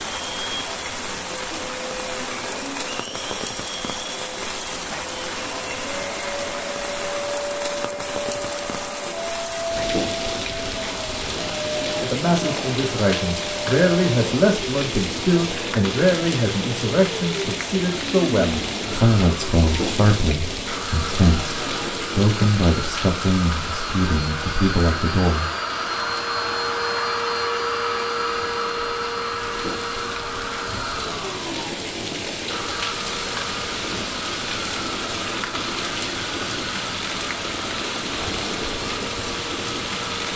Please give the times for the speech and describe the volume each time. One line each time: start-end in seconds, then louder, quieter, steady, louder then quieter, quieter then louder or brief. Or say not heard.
12.0-25.5 steady.